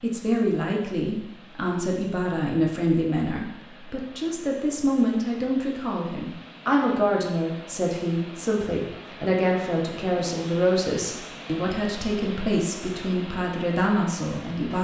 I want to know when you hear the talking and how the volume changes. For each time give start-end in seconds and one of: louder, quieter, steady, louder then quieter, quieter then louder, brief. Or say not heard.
0.0-14.7 steady.